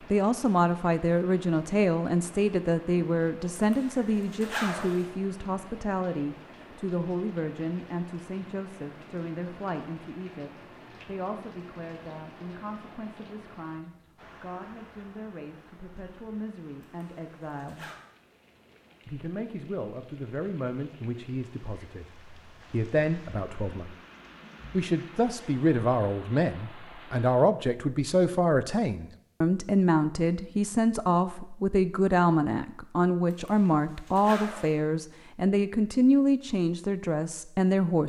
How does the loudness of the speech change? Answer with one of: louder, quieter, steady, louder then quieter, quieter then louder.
quieter then louder.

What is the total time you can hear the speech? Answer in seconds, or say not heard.
36 s.